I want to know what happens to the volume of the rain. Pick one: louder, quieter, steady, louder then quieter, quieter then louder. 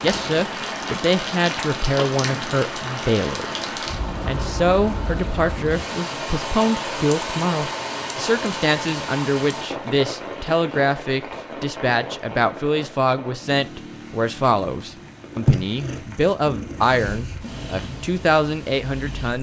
quieter.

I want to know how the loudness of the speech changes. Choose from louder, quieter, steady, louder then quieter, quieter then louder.
steady.